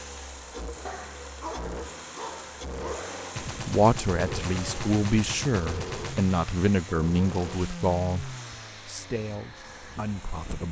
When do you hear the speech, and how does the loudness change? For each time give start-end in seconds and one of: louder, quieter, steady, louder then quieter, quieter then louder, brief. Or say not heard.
3.5-10.6 quieter.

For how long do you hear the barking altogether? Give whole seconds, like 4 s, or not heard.
2 s.